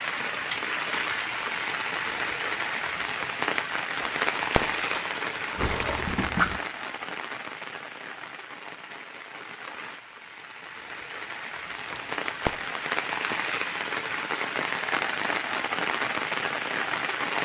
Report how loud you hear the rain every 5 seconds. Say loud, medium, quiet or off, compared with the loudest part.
loud, medium, loud, loud.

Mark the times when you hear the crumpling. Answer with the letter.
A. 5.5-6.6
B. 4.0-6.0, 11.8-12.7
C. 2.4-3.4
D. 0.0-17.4
B.